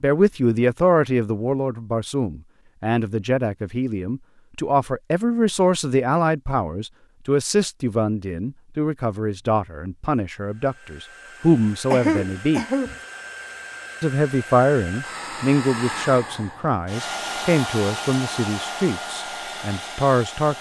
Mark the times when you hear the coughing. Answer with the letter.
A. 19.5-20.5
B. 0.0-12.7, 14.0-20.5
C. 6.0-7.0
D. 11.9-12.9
D.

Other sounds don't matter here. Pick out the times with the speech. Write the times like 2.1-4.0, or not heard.
0.0-12.7, 14.0-20.5.